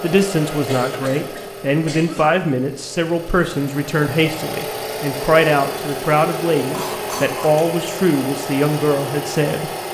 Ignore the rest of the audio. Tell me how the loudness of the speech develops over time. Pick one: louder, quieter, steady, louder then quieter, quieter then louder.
steady.